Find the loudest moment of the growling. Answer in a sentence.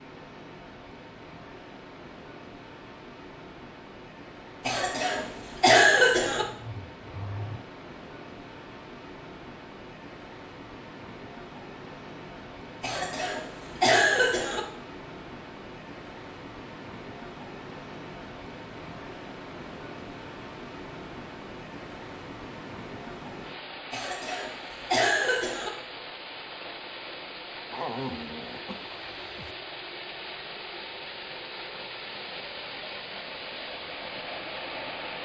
The loudest moment of the growling is at 28 seconds.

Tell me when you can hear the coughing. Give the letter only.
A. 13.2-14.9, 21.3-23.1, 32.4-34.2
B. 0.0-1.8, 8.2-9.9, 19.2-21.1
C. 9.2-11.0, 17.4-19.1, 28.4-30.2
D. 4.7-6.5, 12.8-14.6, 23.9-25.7
D.